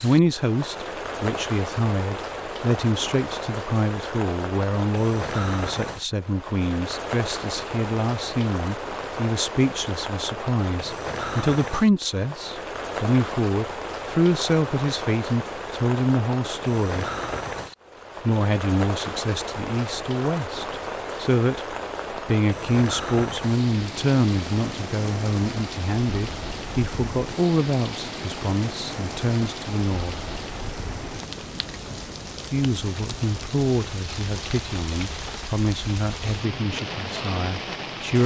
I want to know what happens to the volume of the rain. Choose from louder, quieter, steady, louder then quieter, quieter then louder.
steady.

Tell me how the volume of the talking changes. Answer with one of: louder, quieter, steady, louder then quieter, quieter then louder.
steady.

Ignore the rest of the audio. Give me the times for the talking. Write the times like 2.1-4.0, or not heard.
0.0-17.1, 18.2-30.2, 32.5-38.2.